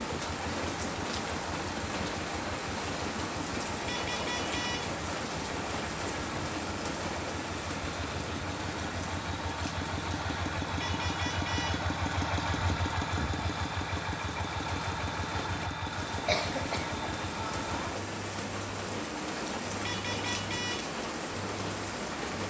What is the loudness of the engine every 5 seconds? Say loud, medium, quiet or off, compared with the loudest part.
medium, medium, loud, loud, off.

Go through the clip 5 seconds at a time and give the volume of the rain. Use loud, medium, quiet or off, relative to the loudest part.
loud, loud, medium, loud, loud.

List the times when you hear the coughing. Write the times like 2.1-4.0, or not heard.
16.2-16.9.